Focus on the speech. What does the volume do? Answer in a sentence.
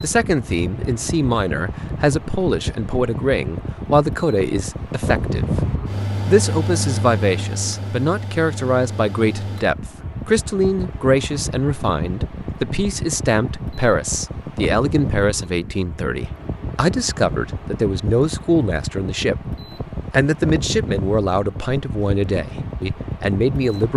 The loudness of the speech stays about the same.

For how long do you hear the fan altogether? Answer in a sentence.
The fan can be heard for 24 seconds in total.